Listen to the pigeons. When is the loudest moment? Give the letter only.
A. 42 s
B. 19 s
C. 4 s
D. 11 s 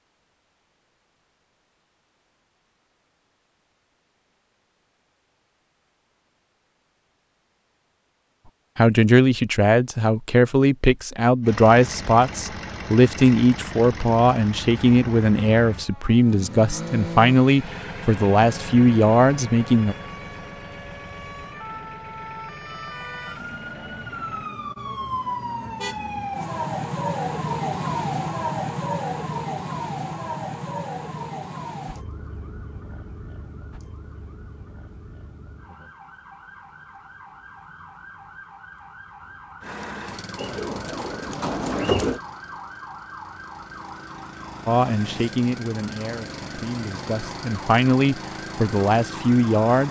A.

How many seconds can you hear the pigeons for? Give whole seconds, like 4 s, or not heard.
2 s.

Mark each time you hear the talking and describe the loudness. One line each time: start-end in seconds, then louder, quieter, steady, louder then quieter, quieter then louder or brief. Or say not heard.
8.8-19.9 steady
44.6-49.8 quieter then louder.